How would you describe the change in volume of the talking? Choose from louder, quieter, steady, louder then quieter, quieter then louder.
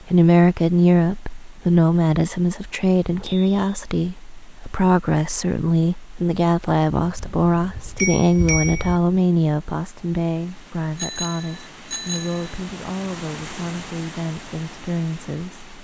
quieter.